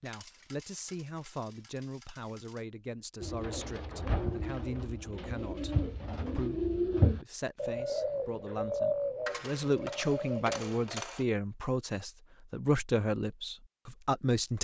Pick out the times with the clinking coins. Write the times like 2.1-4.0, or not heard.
0.1-2.6, 9.2-11.2.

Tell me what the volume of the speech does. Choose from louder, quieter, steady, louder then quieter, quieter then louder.
louder.